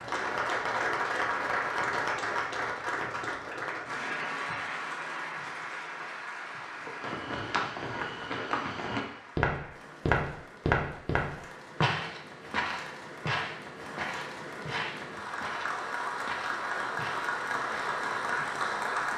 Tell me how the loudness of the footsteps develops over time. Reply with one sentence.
The loudness of the footsteps goes up, then down.